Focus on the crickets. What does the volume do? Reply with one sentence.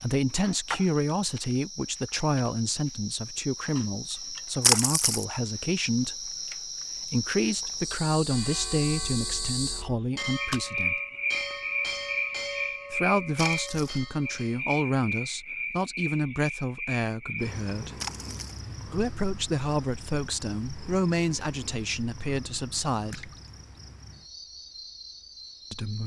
The volume of the crickets goes up, then down.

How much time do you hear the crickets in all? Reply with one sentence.
The crickets can be heard for 26 seconds in total.